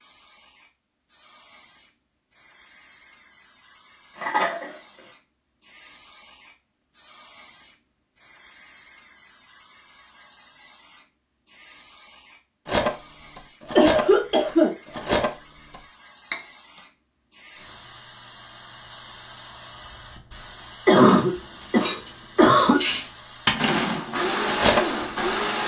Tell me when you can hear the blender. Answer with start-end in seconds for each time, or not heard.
23.6-25.6.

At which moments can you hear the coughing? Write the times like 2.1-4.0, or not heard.
4.2-4.8, 13.8-15.2, 20.9-22.8.